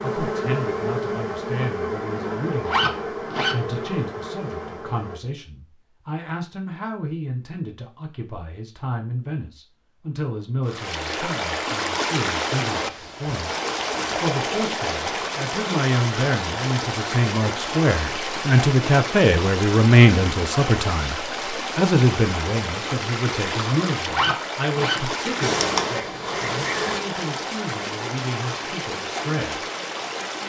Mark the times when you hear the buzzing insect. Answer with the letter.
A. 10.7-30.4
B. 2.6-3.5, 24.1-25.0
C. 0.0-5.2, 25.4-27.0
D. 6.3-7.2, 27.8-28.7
C.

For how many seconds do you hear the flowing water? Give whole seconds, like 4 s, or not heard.
20 s.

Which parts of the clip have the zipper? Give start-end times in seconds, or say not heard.
2.6-3.5, 24.1-25.0.